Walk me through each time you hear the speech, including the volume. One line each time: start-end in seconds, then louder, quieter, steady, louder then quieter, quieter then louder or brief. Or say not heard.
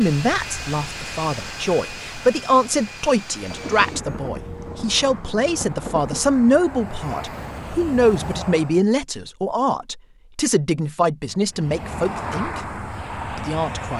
0.0-12.7 steady
13.3-13.9 brief.